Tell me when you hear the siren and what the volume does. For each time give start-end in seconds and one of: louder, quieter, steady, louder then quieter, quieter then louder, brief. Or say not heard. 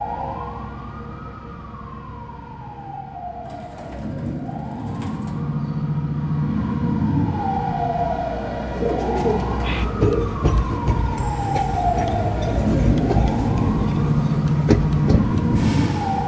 0.0-16.2 louder.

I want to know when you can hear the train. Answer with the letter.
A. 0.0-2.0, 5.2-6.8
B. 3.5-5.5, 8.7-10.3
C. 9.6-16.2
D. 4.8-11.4
C.